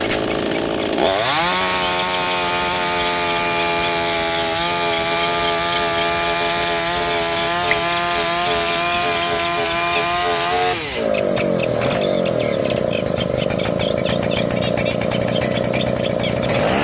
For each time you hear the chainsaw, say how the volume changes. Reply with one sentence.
You can hear the chainsaw from 0.0 to 16.7 s, at a steady volume.